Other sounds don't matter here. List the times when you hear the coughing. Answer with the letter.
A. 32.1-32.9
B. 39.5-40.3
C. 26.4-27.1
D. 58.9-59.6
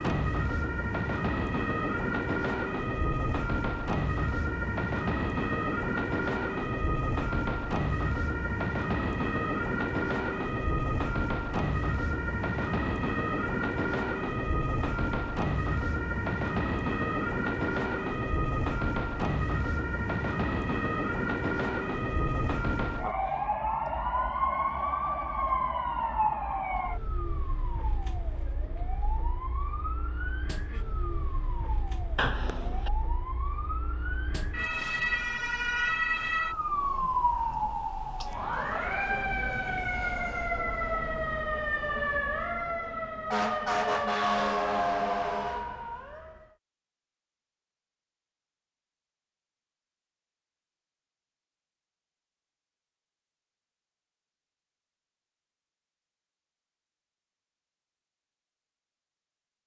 A.